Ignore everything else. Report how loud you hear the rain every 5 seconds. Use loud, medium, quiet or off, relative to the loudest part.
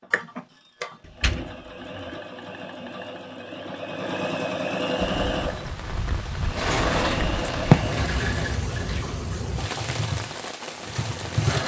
off, loud, loud.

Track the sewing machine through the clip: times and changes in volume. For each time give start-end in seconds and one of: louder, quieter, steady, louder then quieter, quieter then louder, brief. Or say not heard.
0.0-11.6 louder then quieter.